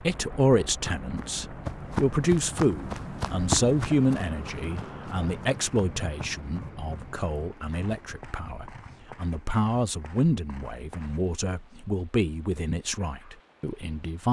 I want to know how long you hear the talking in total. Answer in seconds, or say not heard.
14 s.